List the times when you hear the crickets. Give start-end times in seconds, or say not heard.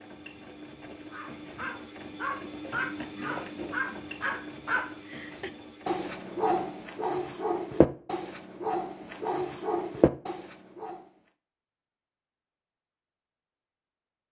not heard.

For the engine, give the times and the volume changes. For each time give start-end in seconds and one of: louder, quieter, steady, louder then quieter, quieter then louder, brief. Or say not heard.
0.0-6.9 louder then quieter.